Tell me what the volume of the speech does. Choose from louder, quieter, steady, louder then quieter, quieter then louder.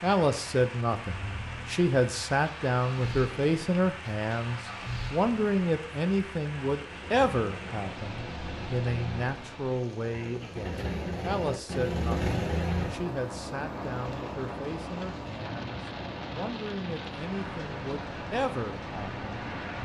quieter.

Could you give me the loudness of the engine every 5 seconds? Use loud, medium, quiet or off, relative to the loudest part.
medium, medium, loud, medium.